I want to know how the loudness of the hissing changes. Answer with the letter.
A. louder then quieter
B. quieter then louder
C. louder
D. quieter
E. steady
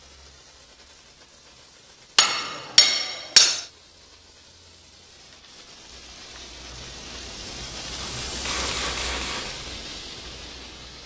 C.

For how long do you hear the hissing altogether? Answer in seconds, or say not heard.
11 s.